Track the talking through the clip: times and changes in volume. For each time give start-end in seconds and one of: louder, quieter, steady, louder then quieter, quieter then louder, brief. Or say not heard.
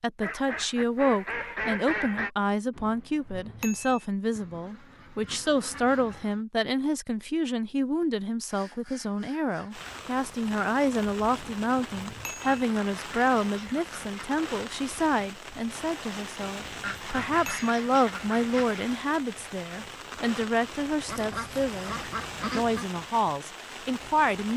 0.0-21.9 steady
22.6-24.5 brief.